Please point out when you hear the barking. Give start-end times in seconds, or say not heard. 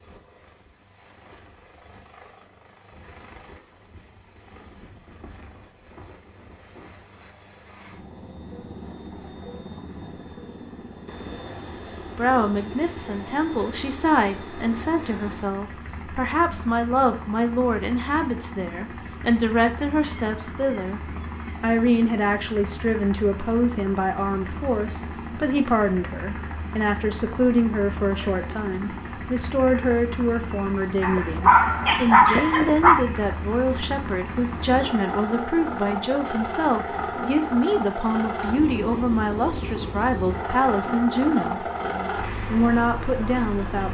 31.0-33.0.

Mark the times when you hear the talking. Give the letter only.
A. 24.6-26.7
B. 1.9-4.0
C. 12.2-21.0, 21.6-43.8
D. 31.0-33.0
C.